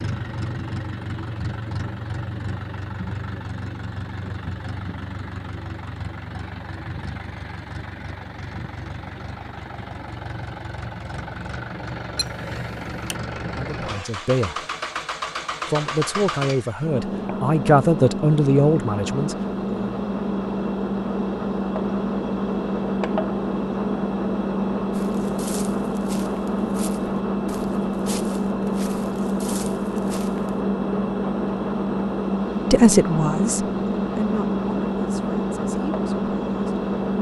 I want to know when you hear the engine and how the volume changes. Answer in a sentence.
You can hear the engine from 0.0 to 37.1 s, getting louder.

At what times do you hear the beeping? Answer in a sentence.
You can hear the beeping from 12.2 to 13.2 s.